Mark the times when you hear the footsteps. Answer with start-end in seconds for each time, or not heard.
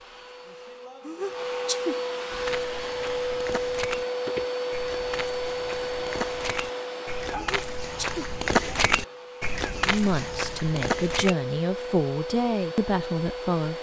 2.3-11.3.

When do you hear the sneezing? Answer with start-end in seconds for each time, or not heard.
1.1-2.0, 7.3-8.3.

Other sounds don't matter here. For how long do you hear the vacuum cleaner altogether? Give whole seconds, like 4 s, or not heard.
14 s.